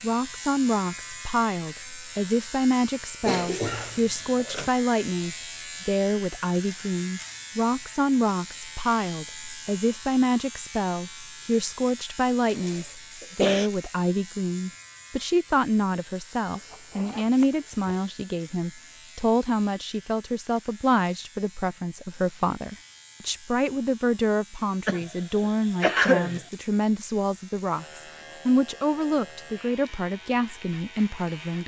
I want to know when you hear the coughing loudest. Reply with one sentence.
The loudest moment of the coughing is at 26 seconds.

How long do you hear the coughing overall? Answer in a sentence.
You can hear the coughing for 4 seconds altogether.